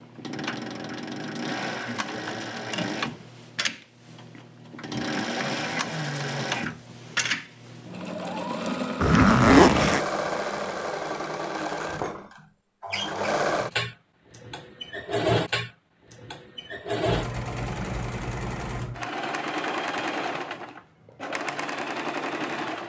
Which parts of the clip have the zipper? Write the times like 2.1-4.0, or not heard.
9.0-10.0.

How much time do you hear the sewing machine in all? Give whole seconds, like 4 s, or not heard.
23 s.